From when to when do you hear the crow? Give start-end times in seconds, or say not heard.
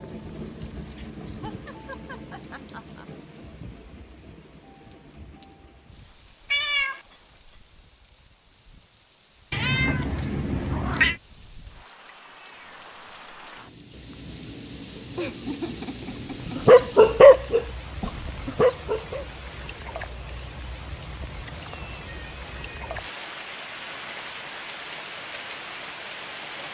not heard.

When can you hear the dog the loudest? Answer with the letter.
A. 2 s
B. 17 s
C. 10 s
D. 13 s
B.